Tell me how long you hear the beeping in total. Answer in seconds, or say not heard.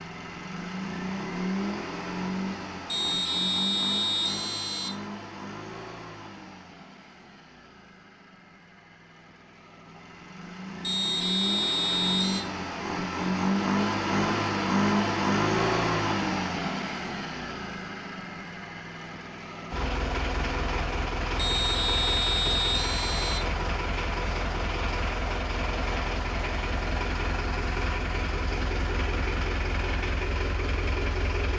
6 s.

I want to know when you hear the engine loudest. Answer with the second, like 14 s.
15 s.